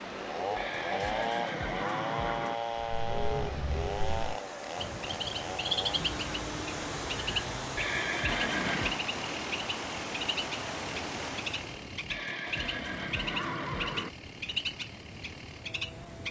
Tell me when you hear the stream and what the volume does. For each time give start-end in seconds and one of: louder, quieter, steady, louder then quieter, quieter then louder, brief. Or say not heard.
0.0-11.9 louder.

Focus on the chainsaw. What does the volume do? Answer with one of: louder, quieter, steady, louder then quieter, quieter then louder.
quieter.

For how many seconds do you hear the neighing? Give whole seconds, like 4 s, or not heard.
5 s.